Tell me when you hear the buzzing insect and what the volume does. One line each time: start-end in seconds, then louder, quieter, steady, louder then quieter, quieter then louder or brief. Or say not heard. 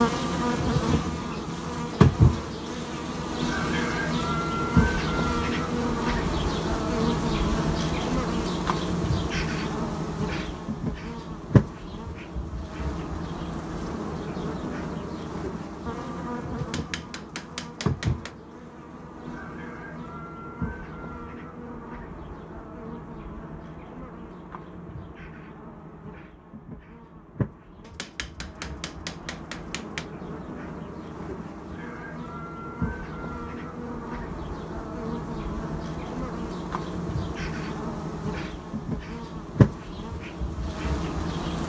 0.0-41.6 quieter then louder.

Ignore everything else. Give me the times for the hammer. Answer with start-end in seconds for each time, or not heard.
16.6-18.4, 27.8-30.1.